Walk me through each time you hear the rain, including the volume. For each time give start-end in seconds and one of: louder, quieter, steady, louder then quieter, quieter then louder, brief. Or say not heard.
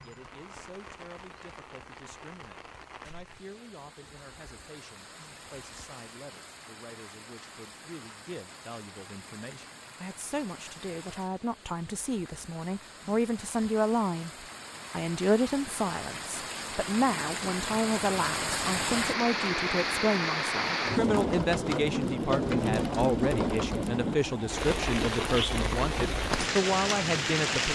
0.0-27.7 louder.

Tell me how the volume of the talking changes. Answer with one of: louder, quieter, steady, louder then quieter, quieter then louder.
louder.